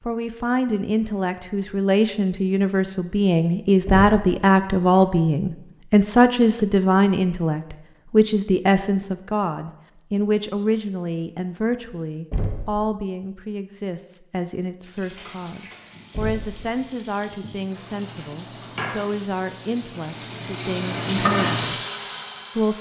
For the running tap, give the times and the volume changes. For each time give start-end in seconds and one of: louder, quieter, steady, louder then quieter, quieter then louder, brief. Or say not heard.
14.8-22.7 louder.